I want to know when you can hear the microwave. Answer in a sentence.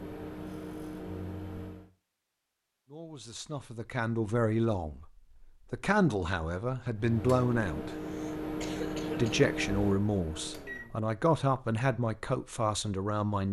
The microwave can be heard from 0.0 to 1.9 s and from 7.0 to 11.1 s.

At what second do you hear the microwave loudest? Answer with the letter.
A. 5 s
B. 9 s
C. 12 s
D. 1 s
B.